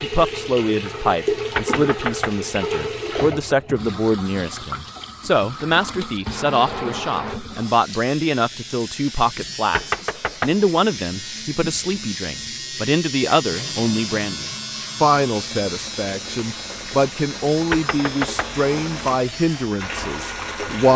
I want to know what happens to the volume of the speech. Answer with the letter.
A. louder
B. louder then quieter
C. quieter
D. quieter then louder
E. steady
E.